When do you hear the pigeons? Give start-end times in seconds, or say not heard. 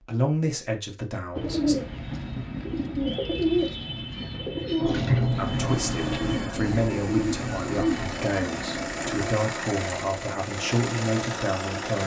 1.4-9.3.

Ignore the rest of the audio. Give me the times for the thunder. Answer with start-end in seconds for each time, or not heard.
4.8-8.2.